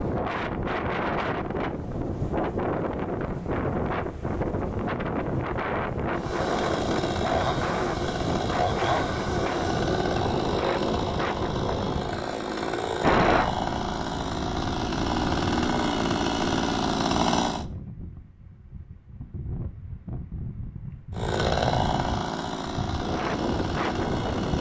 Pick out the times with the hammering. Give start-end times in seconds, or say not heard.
not heard.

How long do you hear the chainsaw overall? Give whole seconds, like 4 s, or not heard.
15 s.